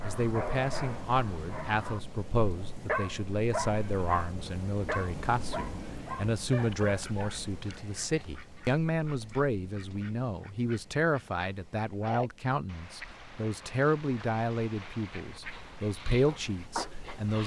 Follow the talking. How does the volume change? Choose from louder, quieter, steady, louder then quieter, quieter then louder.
steady.